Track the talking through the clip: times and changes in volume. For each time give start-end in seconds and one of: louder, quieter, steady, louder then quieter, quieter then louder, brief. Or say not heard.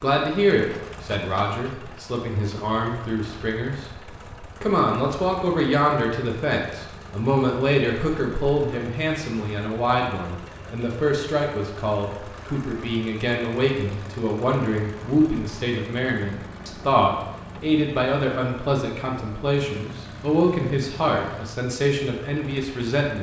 0.0-23.1 steady.